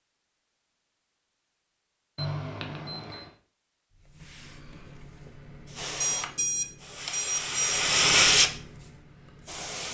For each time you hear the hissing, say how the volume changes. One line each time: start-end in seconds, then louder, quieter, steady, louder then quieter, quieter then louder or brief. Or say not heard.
4.0-9.9 louder then quieter.